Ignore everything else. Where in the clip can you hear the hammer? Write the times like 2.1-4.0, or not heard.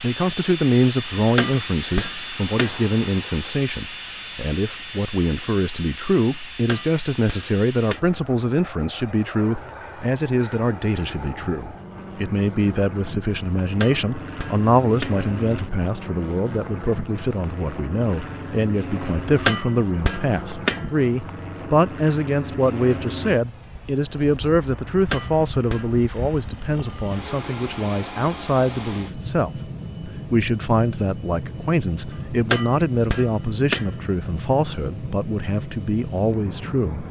1.1-2.8, 6.5-8.1, 13.6-15.2, 19.2-20.9, 24.9-25.9, 32.3-33.9.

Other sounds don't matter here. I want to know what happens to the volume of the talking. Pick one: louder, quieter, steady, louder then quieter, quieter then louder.
steady.